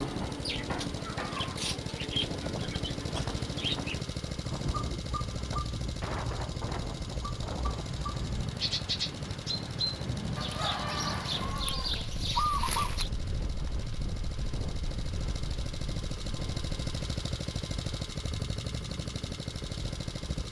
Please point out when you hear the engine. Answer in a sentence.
You can hear the engine from 0.0 to 20.4 s.